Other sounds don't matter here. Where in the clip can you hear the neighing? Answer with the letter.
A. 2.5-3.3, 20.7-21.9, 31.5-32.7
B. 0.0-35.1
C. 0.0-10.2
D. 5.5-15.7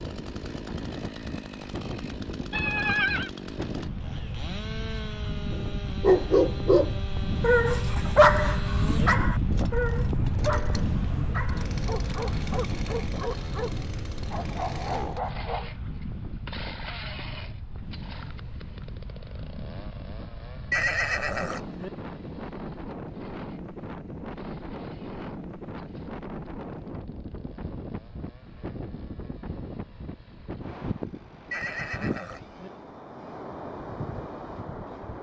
A.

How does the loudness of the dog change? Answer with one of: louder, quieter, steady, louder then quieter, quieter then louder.
quieter.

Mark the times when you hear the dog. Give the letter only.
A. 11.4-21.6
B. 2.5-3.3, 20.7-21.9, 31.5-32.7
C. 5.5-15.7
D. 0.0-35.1
C.